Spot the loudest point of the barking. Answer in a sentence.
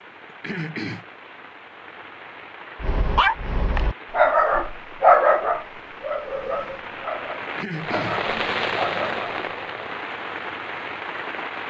The volume of the barking peaks at 5 seconds.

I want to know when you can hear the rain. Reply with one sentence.
You can hear the rain from 0.0 to 11.6 s.